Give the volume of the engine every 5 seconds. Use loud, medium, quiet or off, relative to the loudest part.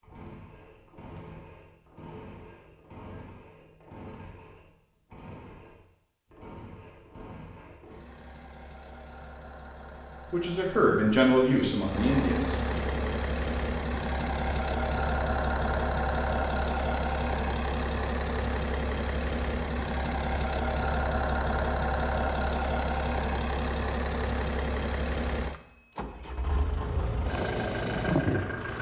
quiet, quiet, loud, loud, loud, loud.